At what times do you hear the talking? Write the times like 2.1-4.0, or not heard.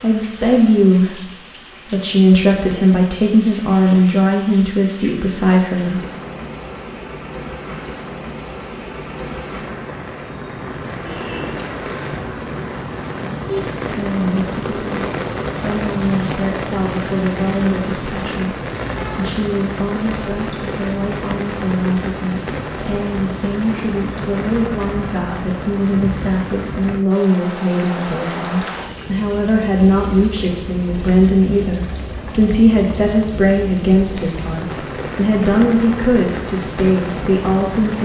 0.0-6.0, 13.9-38.0.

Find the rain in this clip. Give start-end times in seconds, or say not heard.
0.0-38.0.